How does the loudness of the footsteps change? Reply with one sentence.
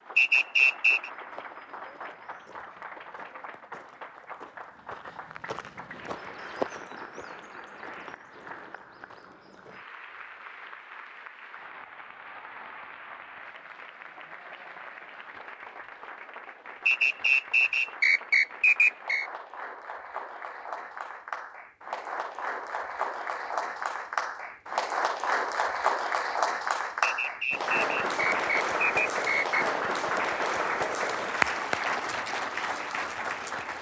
The loudness of the footsteps goes up, then down.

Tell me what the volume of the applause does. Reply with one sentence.
The loudness of the applause goes up.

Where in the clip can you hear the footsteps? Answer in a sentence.
The footsteps can be heard from 1.1 to 9.8 s.